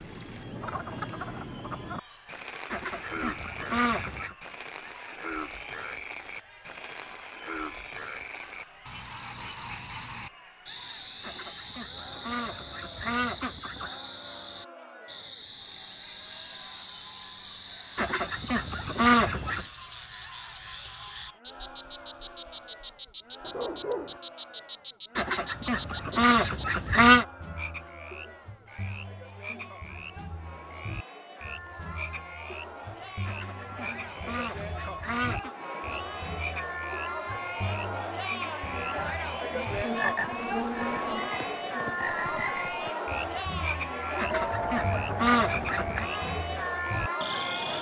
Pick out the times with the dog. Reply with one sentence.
You can hear the dog from 23.4 to 24.2 s.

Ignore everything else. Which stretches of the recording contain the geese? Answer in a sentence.
You can hear the geese from 2.7 to 4.3 s, from 11.2 to 13.9 s, from 17.9 to 19.6 s, from 25.1 to 27.2 s, from 33.2 to 35.5 s and from 44.1 to 46.0 s.